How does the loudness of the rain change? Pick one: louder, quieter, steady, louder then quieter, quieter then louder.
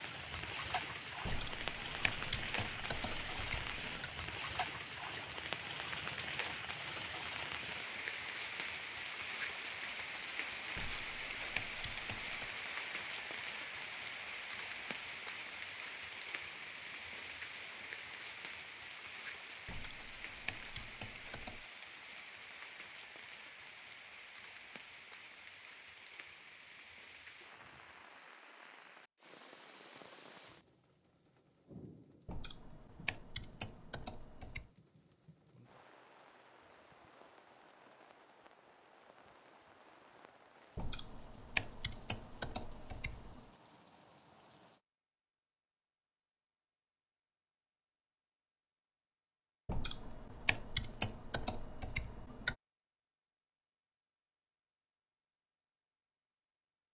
quieter.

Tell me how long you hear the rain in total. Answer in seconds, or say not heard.
45 s.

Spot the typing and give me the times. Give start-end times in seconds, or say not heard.
1.2-4.1, 10.8-12.5, 19.6-21.6, 32.2-34.7, 40.8-43.5, 49.6-52.5.